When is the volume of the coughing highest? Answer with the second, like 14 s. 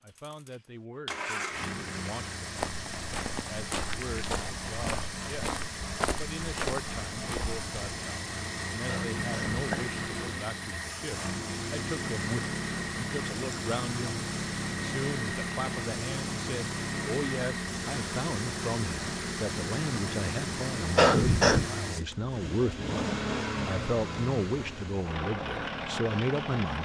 21 s.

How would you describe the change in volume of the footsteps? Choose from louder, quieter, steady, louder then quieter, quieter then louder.
steady.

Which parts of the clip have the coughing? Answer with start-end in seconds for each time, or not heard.
8.8-9.9, 20.9-21.7.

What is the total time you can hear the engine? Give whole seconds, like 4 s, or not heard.
27 s.